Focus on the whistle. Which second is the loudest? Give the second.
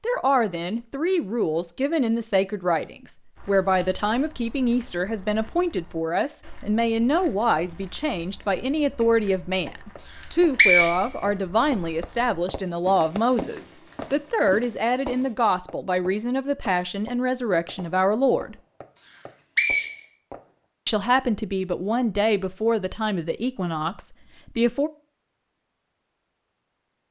11 s.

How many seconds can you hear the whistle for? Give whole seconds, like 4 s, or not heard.
2 s.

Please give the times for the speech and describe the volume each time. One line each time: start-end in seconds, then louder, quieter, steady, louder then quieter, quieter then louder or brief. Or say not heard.
0.0-18.6 steady
20.9-24.9 quieter.